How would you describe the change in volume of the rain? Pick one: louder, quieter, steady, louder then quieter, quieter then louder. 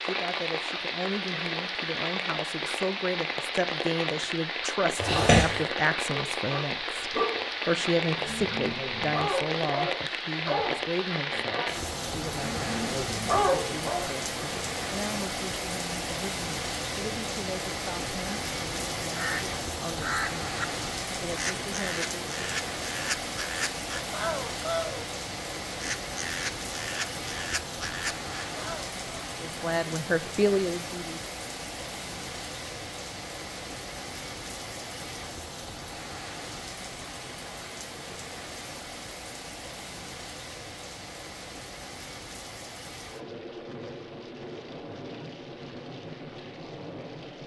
quieter.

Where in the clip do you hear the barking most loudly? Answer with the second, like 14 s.
13 s.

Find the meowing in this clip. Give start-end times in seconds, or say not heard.
5.0-5.7.